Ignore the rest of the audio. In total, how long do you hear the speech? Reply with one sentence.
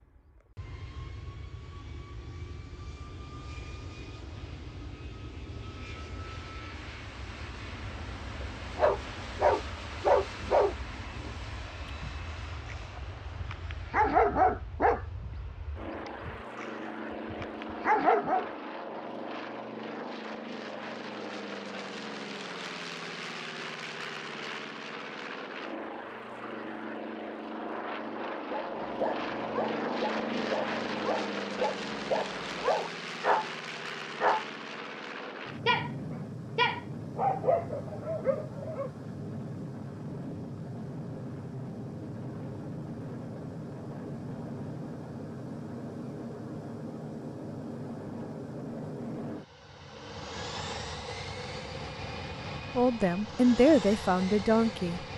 The speech can be heard for 2 seconds in total.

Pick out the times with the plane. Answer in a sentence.
You can hear the plane from 0.0 to 55.1 s.